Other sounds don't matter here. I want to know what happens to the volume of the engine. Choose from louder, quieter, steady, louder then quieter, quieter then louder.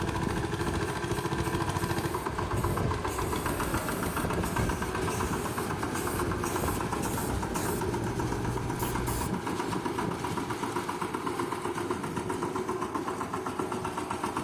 steady.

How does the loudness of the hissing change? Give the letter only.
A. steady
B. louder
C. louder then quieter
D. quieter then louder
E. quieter
A.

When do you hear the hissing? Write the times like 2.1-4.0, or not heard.
0.0-9.3.